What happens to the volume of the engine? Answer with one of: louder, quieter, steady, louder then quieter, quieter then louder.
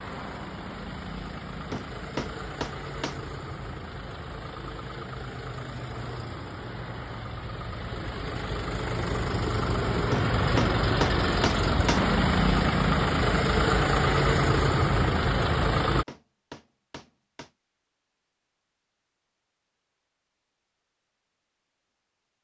louder.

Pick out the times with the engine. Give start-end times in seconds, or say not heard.
0.0-16.1.